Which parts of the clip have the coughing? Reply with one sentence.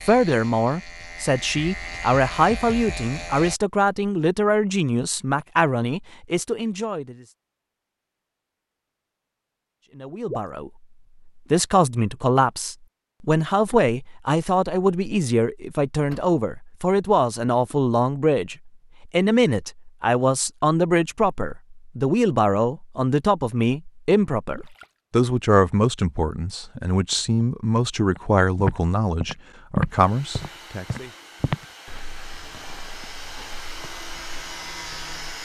You can't hear the coughing here.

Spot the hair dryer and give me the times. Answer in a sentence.
You can hear the hair dryer from 29.9 to 35.3 s.